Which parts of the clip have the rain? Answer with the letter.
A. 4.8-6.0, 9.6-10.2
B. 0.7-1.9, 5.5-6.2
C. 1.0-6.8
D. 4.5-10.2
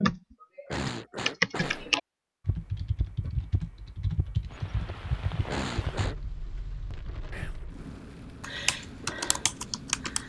D.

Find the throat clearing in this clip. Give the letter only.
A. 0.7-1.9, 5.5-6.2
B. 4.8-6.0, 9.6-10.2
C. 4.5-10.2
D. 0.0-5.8
A.